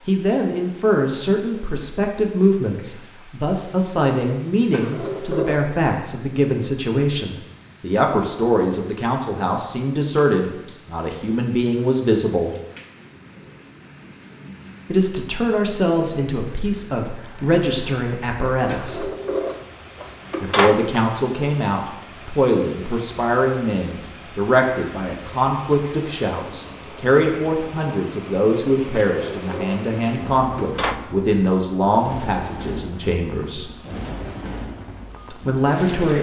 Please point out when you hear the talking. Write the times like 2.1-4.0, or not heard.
0.1-12.6, 14.8-19.1, 20.4-33.7, 35.3-36.1.